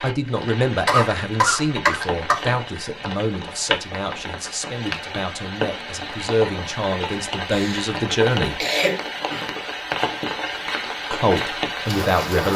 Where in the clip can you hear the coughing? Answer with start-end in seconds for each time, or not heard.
0.8-2.4, 7.5-7.9, 8.6-9.5.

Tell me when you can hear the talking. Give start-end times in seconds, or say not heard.
0.0-8.6, 11.1-12.5.